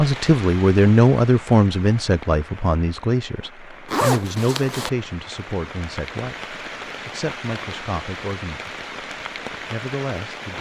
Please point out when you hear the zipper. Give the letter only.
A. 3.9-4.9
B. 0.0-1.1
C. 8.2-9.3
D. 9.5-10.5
A.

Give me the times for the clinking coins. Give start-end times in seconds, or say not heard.
not heard.